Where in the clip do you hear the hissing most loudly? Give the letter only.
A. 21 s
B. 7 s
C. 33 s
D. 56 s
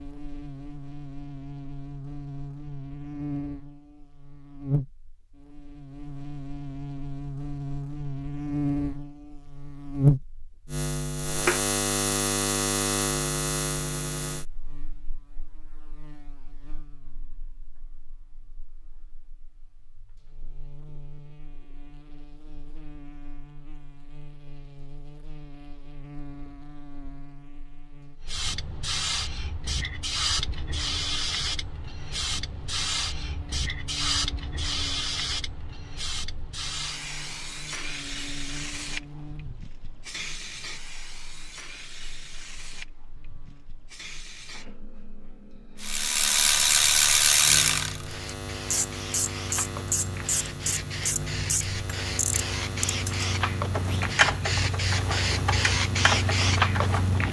D.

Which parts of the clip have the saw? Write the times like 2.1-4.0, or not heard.
not heard.